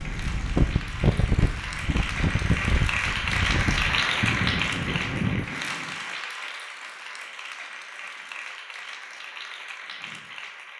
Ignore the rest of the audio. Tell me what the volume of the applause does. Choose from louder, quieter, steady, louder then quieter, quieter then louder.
louder then quieter.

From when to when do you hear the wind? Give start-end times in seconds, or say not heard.
0.0-5.5.